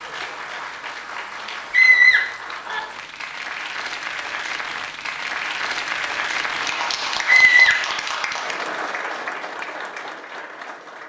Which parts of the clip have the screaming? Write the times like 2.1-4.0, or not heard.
1.7-2.8, 7.2-7.8.